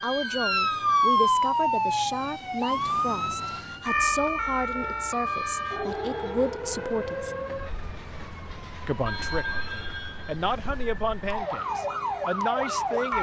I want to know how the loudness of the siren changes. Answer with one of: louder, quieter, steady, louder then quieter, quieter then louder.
quieter then louder.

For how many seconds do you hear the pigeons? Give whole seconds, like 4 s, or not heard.
not heard.